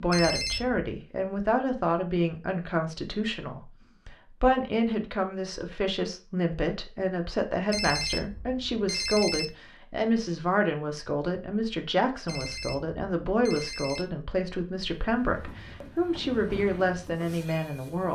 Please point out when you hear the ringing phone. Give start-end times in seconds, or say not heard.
0.1-0.9, 7.7-9.6, 12.2-14.1.